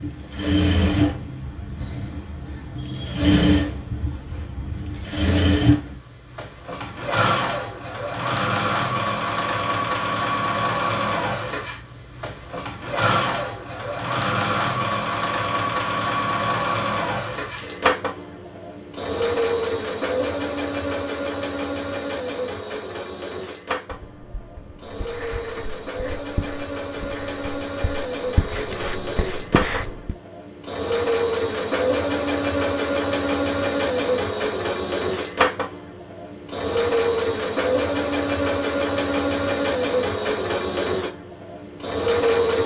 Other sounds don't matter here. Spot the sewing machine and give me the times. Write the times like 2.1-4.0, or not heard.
0.0-42.6.